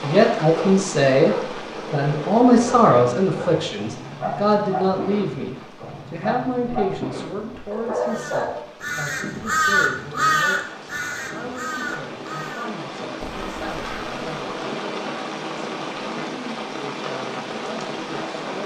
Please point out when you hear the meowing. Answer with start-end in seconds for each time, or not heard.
not heard.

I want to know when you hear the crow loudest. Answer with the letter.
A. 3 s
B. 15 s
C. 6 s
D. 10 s
D.